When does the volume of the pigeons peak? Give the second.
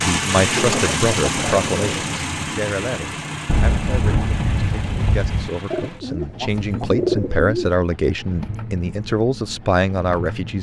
7 s.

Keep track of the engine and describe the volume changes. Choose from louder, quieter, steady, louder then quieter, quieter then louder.
quieter.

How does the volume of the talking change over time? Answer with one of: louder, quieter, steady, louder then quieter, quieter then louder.
quieter then louder.